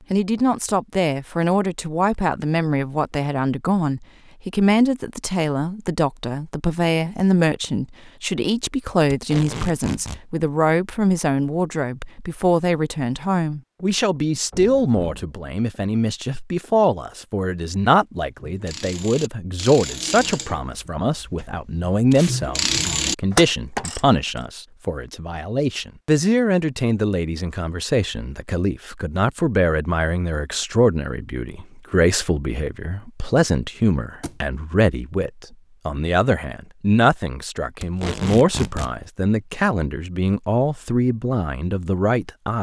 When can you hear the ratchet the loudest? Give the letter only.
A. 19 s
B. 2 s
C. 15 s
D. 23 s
D.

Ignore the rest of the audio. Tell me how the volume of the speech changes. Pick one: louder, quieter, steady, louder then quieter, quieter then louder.
steady.